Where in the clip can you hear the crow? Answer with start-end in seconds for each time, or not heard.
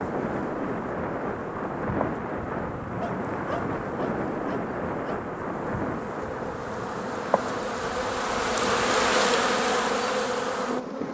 not heard.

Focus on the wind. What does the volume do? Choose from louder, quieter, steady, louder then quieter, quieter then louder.
quieter.